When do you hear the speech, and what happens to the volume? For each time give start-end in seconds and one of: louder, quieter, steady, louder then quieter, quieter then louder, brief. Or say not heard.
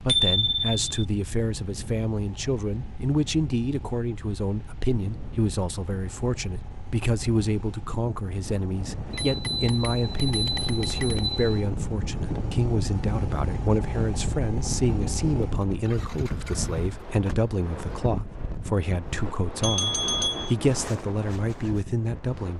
0.0-22.5 steady.